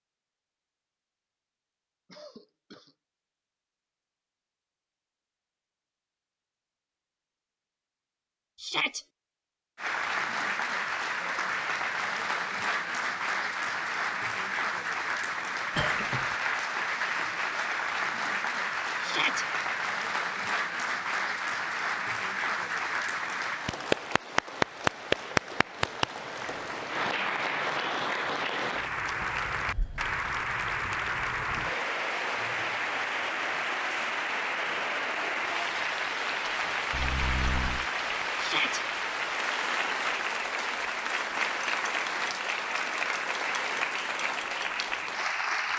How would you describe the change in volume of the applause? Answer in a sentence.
The volume of the applause stays about the same.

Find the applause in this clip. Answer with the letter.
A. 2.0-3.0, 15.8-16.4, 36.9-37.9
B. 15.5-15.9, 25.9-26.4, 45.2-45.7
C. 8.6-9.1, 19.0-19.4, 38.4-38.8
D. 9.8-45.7
D.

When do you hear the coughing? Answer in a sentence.
The coughing can be heard from 2.0 to 3.0 s, from 15.8 to 16.4 s and from 36.9 to 37.9 s.